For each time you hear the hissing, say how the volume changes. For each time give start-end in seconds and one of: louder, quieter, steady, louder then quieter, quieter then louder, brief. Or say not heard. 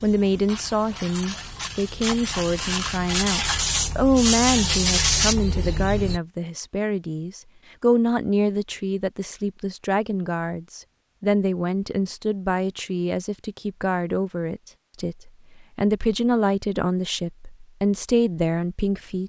0.0-6.2 louder.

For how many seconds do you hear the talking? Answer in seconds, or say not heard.
19 s.